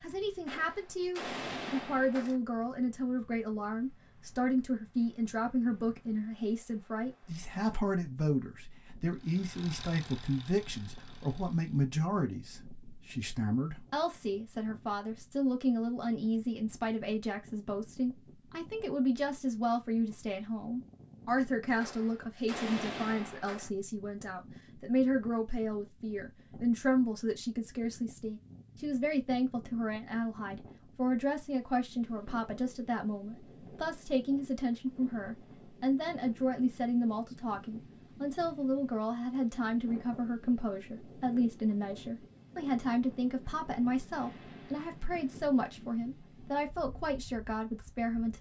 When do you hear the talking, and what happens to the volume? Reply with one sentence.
You can hear the talking from 0.0 to 48.3 s, at a steady volume.